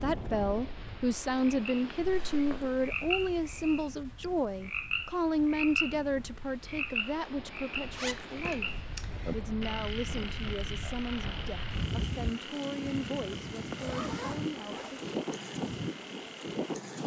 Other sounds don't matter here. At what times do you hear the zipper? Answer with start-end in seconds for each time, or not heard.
2.0-2.7, 7.9-9.4, 13.8-15.1.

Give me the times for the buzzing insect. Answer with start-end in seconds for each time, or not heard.
not heard.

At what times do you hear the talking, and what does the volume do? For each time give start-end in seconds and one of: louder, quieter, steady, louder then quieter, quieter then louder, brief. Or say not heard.
0.0-8.7 quieter
9.3-15.1 steady.